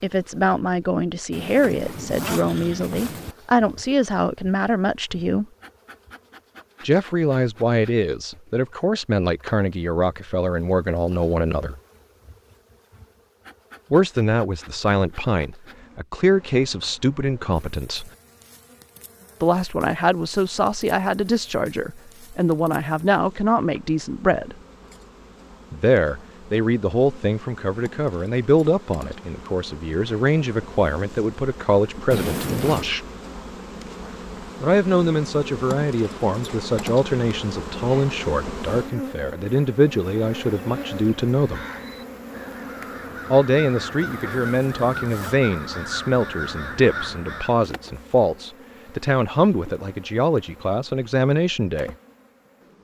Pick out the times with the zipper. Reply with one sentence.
You can hear the zipper from 1.3 to 3.4 s, from 32.1 to 32.9 s and from 44.3 to 45.4 s.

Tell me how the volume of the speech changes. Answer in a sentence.
The volume of the speech stays about the same.